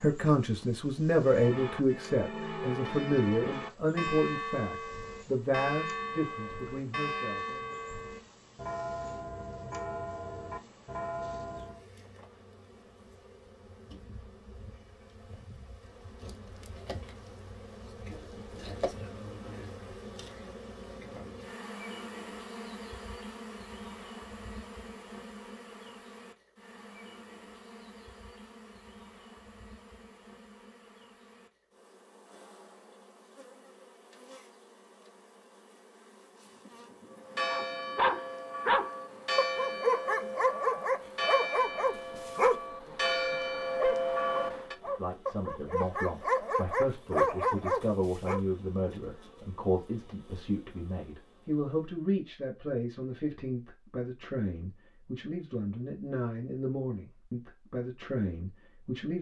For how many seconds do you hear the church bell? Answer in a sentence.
The church bell can be heard for 18 seconds in total.